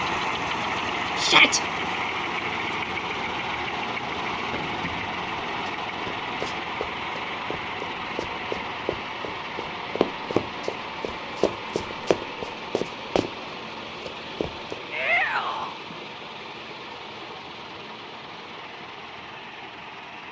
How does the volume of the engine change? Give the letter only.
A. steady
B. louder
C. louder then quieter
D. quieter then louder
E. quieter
E.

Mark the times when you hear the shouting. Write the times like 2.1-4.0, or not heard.
1.2-1.6, 14.9-15.8.